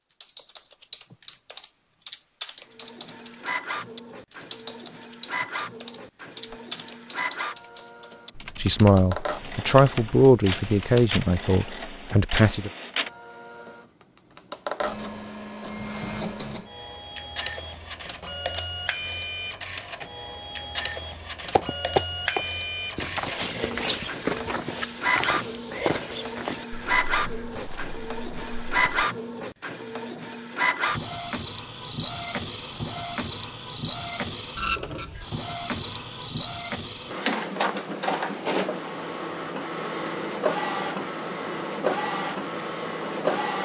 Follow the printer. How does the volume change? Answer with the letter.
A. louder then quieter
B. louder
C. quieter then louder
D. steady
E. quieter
B.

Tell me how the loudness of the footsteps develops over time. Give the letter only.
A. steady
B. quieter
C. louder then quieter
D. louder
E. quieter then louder
B.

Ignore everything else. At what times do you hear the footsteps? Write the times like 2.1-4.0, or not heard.
21.6-29.1.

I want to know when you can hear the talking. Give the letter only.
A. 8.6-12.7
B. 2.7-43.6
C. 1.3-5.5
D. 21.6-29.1
A.